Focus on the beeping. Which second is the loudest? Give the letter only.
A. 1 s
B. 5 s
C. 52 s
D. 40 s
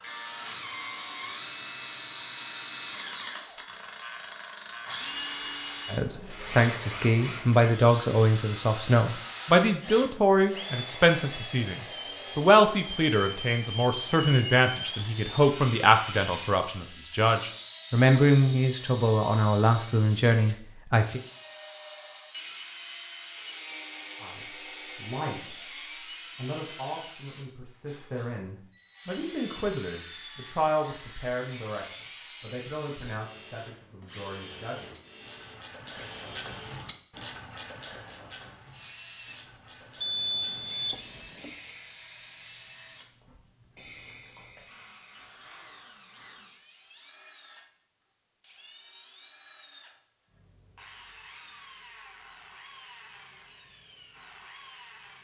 D.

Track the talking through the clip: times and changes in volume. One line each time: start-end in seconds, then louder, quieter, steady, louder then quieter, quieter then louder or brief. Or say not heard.
5.9-21.2 steady
24.2-25.7 brief
26.4-34.9 louder then quieter.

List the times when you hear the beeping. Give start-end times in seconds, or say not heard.
40.0-41.5.